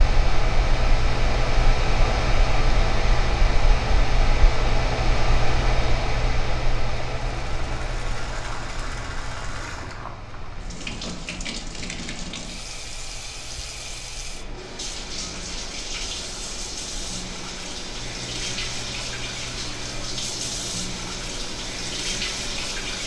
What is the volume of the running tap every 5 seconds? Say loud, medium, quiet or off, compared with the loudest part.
off, medium, medium, loud, loud.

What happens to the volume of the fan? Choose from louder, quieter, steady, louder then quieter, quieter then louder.
quieter.